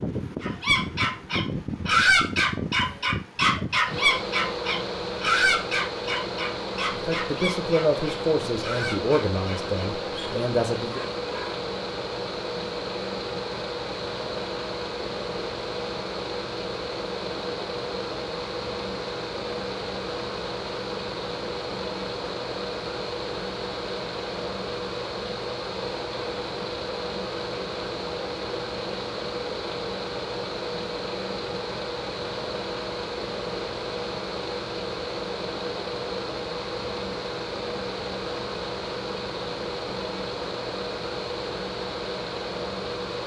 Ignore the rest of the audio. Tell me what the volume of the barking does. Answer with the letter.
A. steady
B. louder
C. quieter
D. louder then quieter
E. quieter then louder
C.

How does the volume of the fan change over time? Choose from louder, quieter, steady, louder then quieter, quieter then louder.
steady.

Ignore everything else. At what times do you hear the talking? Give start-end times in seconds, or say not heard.
6.9-11.0.